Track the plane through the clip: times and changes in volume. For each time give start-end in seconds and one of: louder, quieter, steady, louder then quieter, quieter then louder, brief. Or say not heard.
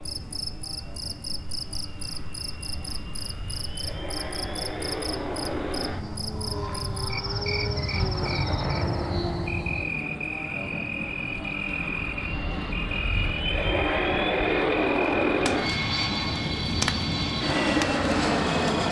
0.0-18.8 louder.